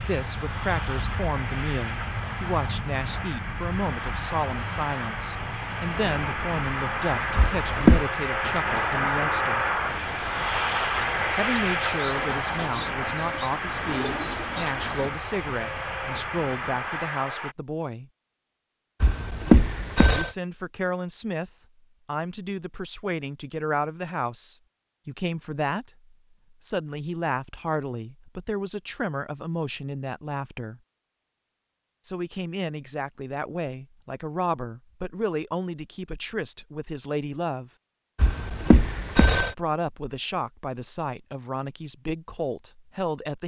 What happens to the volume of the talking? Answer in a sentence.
The volume of the talking stays about the same.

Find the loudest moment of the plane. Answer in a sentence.
The volume of the plane peaks at 9 seconds.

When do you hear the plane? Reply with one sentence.
The plane can be heard from 0.0 to 17.6 s.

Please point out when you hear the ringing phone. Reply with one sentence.
You can hear the ringing phone from 7.3 to 8.1 s, from 19.0 to 20.4 s and from 38.1 to 39.5 s.